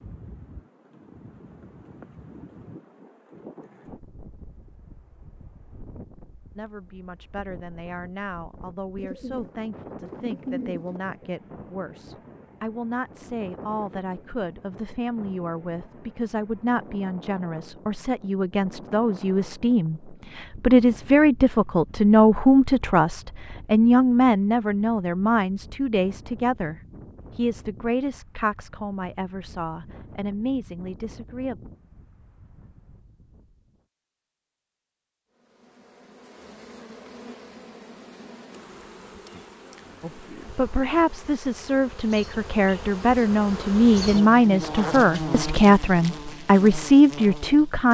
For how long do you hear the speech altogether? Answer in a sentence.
You can hear the speech for 33 seconds altogether.